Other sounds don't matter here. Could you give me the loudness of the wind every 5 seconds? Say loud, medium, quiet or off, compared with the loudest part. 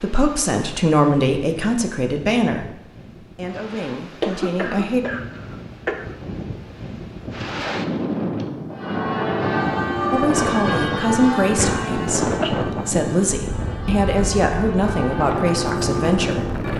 quiet, loud, loud, loud.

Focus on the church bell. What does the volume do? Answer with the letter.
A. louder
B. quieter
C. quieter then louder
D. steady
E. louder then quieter
C.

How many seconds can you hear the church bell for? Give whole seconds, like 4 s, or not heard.
8 s.